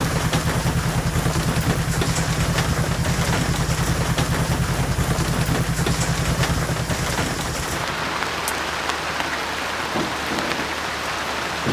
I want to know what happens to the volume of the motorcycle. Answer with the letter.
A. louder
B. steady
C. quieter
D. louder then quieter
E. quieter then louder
C.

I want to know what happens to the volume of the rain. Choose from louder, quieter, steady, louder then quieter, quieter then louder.
steady.